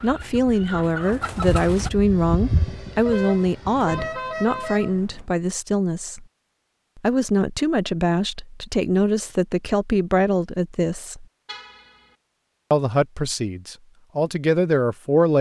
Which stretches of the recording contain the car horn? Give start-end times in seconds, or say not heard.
3.0-5.2, 11.4-12.1.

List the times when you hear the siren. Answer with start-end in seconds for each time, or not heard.
not heard.